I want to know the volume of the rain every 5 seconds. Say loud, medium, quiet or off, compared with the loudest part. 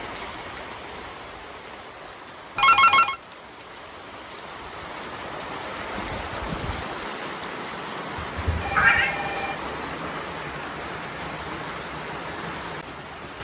medium, loud, loud.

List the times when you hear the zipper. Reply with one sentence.
You can't hear the zipper here.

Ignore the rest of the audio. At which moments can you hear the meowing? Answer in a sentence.
You can hear the meowing from 8.2 to 9.2 s.